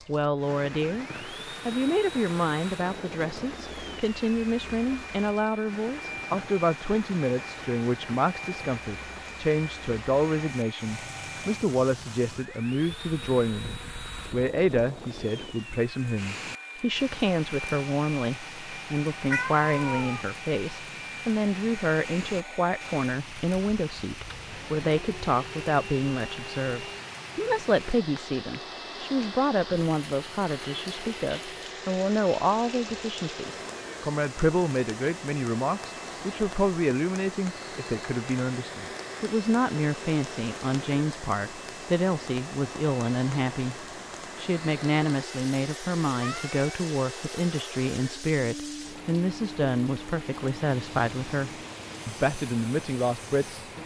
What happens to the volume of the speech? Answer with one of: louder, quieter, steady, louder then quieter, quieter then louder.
steady.